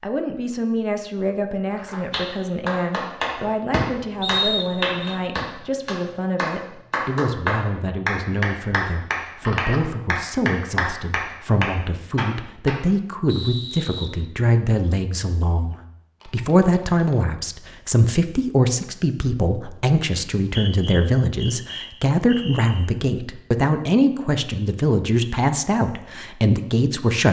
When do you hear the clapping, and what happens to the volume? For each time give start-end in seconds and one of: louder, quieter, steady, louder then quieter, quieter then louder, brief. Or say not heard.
1.8-12.8 steady.